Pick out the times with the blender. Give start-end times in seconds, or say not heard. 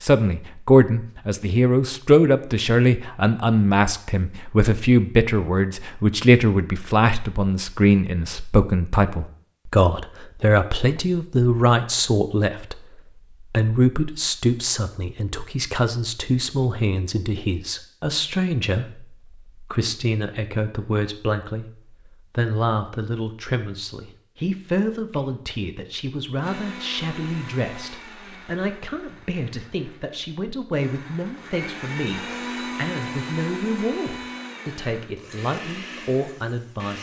26.4-36.9.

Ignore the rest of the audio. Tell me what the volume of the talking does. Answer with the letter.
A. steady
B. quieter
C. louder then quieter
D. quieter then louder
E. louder
B.